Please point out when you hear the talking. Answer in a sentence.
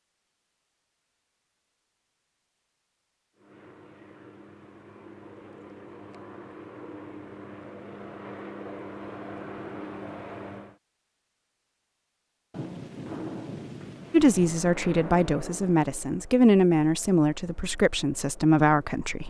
The talking can be heard from 14.1 to 19.2 s.